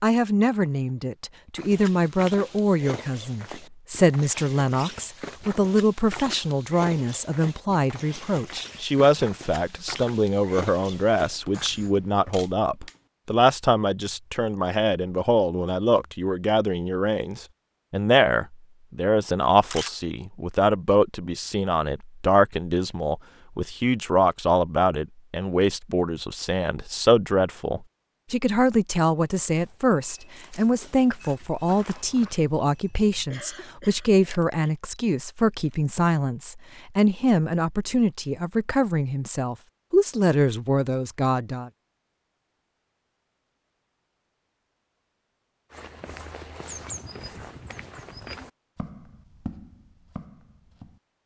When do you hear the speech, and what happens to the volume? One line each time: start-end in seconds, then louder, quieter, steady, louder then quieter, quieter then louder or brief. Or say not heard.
0.0-41.7 steady.